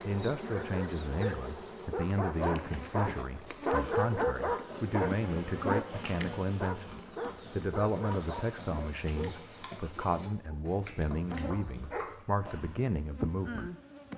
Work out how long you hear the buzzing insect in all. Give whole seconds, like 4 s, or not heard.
14 s.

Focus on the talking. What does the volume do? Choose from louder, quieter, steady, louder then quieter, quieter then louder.
steady.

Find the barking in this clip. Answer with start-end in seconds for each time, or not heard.
0.6-12.2.